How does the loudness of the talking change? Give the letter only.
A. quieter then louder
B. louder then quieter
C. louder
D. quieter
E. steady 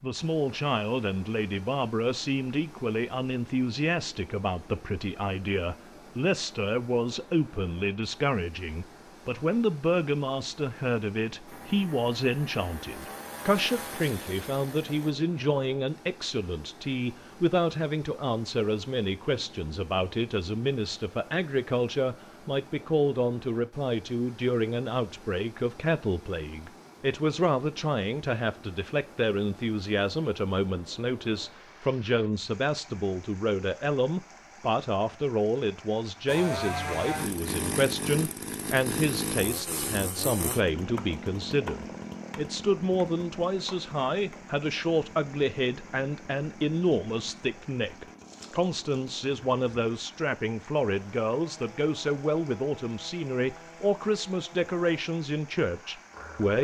E.